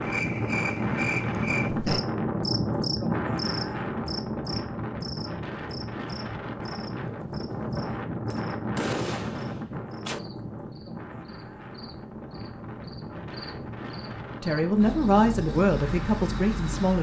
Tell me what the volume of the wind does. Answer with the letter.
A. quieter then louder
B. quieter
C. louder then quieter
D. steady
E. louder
B.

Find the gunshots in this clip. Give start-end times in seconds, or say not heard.
8.3-10.2.